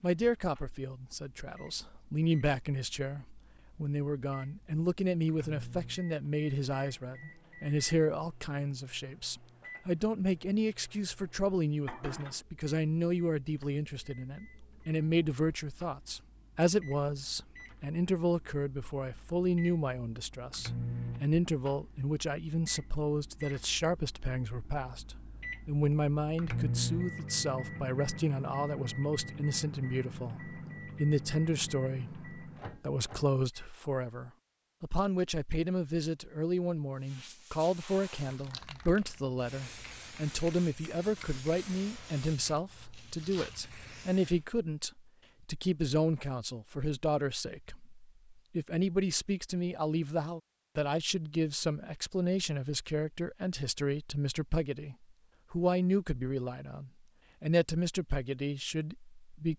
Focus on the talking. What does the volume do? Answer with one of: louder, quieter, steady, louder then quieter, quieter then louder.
steady.